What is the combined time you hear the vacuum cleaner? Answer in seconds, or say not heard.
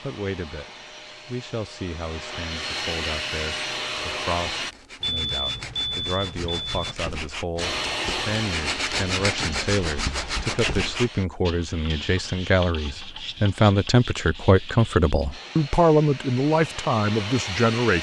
11 s.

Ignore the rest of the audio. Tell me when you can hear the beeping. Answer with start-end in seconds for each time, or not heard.
5.0-7.0.